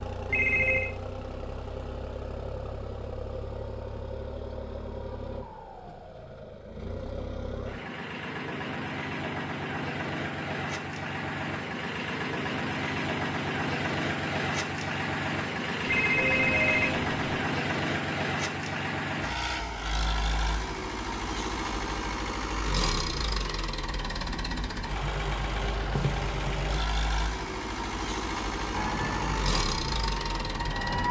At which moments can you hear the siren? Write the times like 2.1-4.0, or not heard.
28.7-31.0.